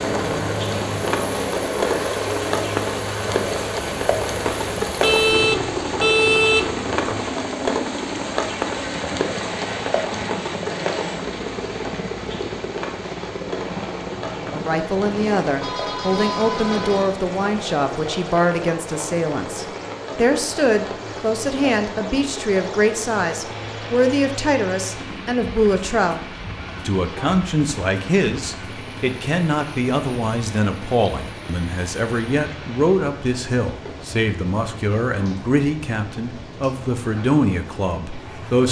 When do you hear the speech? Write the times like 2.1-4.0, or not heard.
14.3-38.6.